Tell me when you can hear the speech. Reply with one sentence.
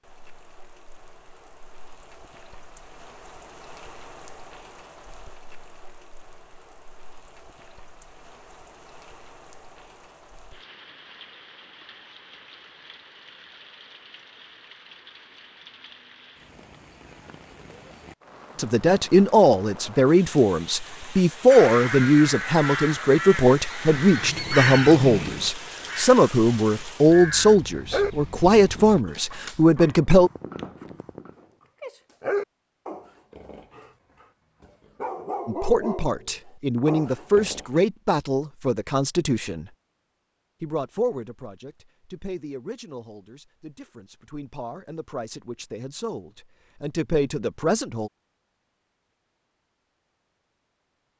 You can hear the speech from 18.6 to 30.3 s, from 35.5 to 39.7 s and from 40.6 to 48.1 s.